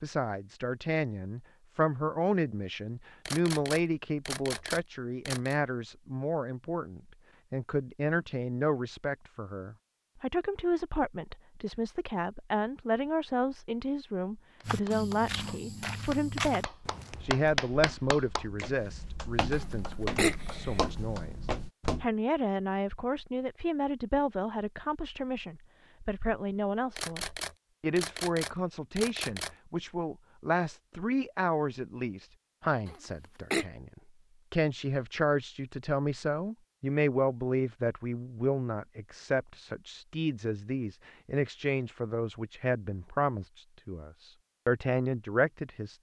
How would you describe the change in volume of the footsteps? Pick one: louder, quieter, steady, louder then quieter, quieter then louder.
quieter then louder.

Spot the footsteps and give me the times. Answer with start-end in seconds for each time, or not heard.
14.7-22.1.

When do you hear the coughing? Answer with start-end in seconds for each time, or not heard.
19.6-20.9, 32.9-33.6.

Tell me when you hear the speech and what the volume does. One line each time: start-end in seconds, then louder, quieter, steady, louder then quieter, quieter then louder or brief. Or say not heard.
0.0-45.9 steady.